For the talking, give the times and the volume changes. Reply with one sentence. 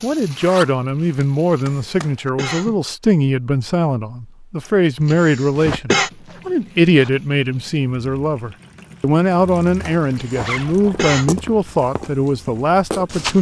You can hear the talking from 0.0 to 13.3 s, at a steady volume.